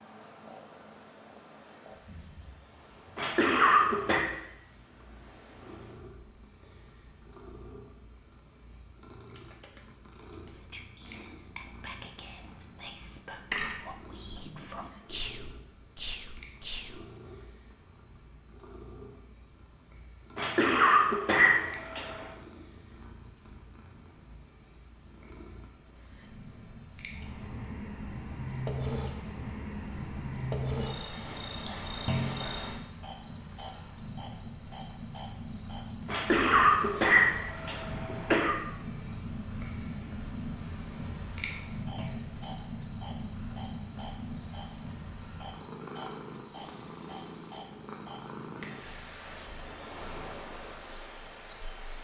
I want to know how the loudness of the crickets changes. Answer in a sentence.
The volume of the crickets goes up.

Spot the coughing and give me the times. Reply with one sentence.
The coughing can be heard from 3.1 to 4.2 s, from 20.4 to 22.3 s and from 36.0 to 38.6 s.